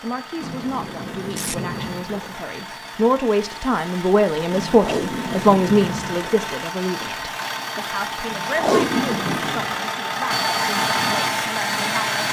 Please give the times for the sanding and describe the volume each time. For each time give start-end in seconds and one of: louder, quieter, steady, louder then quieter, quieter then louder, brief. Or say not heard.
not heard.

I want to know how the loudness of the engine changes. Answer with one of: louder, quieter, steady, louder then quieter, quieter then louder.
louder.